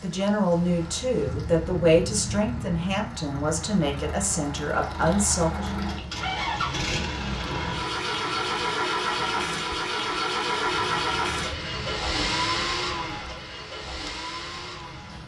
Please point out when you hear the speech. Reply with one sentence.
The speech can be heard from 0.0 to 5.7 s.